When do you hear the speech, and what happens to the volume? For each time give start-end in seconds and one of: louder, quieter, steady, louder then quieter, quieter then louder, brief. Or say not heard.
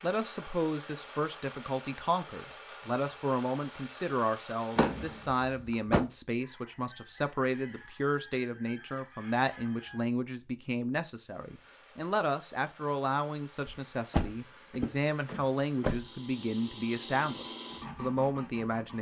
0.0-18.9 steady.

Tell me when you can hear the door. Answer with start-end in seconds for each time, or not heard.
4.8-6.0, 13.7-16.1.